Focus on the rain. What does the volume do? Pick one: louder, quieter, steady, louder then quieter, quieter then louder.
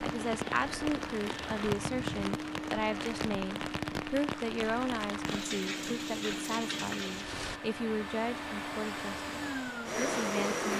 steady.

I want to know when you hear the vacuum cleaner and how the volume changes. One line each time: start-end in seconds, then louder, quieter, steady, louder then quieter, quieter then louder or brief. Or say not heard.
0.0-10.7 louder.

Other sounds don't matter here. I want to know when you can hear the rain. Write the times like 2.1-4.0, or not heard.
0.0-7.6.